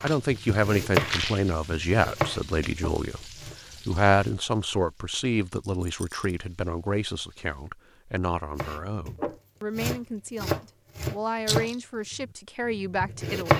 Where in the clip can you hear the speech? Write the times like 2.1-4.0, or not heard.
0.0-13.5.